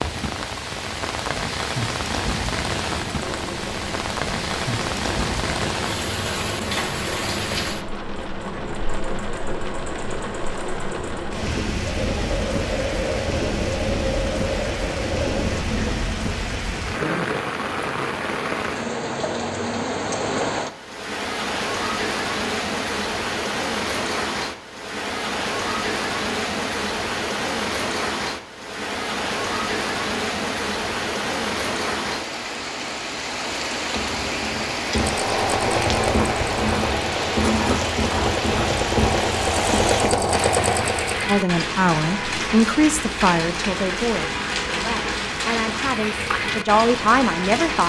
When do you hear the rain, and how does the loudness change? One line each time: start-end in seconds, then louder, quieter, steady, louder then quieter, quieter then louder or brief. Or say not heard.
0.0-47.8 steady.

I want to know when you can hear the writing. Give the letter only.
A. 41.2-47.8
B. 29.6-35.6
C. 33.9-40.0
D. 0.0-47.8
C.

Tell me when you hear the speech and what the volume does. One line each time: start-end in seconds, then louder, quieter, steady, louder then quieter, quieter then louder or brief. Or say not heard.
41.2-47.8 quieter then louder.